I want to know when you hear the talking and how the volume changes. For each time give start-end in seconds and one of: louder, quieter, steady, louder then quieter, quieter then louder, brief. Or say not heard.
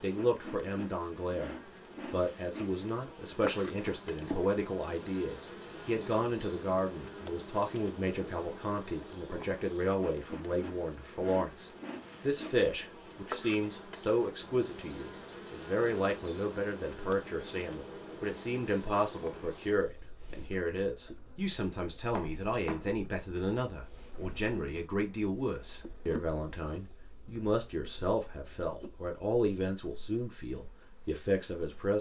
0.0-31.9 steady.